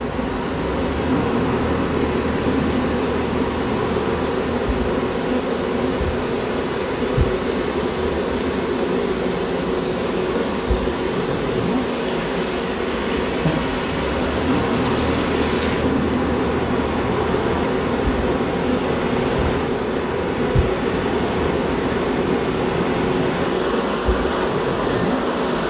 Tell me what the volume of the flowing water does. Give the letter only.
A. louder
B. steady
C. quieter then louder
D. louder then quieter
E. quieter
A.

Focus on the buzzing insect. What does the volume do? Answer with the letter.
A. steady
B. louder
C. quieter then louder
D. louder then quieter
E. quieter
A.